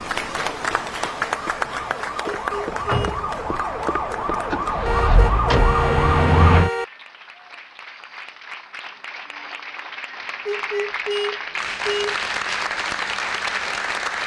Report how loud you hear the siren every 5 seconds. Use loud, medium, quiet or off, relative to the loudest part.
medium, loud, off.